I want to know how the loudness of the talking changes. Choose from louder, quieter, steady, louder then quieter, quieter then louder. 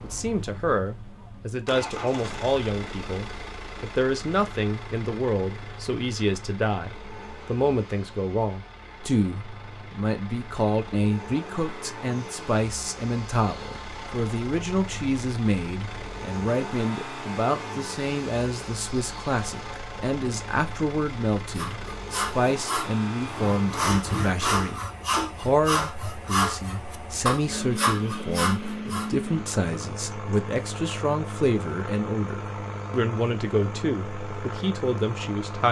steady.